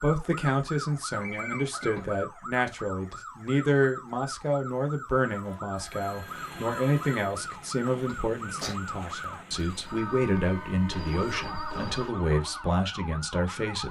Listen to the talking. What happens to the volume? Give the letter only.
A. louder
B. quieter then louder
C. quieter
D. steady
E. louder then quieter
D.